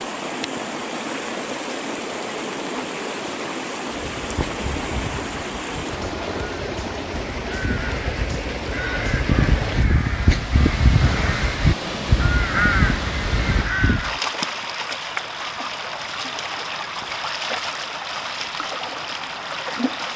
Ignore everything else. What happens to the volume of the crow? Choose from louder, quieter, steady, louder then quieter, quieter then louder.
louder.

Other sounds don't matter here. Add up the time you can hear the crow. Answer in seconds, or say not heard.
10 s.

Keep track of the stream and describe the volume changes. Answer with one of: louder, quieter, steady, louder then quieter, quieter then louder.
steady.